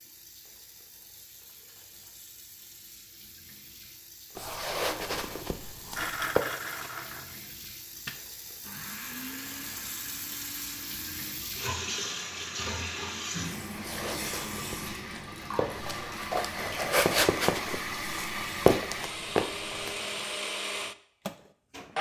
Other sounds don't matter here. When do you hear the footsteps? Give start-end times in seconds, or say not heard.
4.3-6.5, 13.7-19.9.